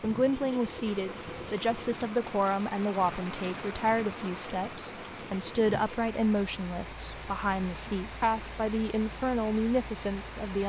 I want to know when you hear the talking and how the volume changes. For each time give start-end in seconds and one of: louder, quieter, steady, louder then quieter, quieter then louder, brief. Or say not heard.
0.0-10.6 steady.